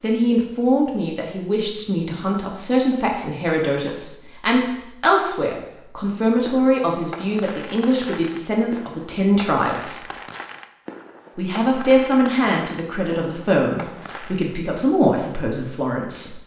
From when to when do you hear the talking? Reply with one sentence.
The talking can be heard from 0.0 to 10.0 s and from 11.3 to 16.4 s.